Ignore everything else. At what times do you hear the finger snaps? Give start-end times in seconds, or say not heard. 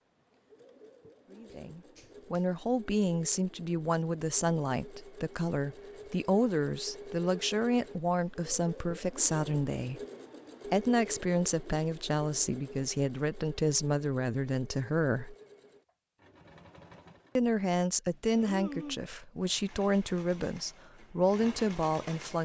1.4-2.5, 18.4-19.1.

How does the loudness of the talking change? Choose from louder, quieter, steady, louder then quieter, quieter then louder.
steady.